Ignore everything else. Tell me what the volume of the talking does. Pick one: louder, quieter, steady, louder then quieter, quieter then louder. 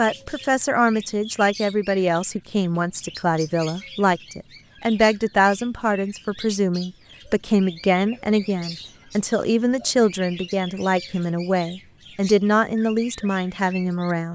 steady.